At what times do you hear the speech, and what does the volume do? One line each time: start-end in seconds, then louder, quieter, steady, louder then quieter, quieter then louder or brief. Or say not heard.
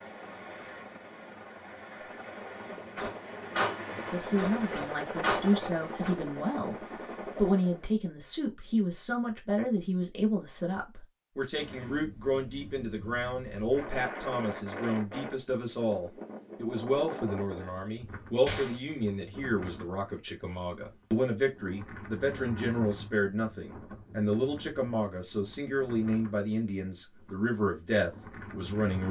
3.9-6.8 brief
7.3-29.0 steady.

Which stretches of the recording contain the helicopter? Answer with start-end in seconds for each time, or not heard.
0.0-8.0.